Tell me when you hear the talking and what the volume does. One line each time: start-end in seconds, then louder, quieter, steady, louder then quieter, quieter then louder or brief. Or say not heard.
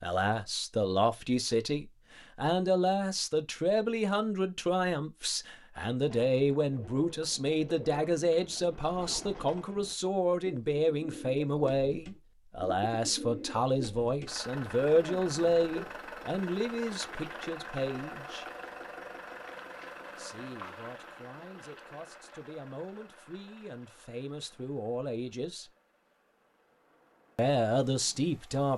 0.0-18.4 steady
20.1-25.7 louder
27.4-28.7 brief.